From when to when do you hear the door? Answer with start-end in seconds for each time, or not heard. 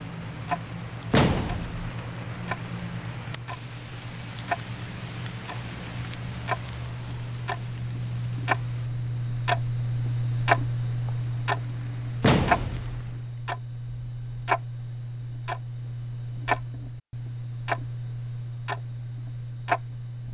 1.1-1.9, 12.2-13.1.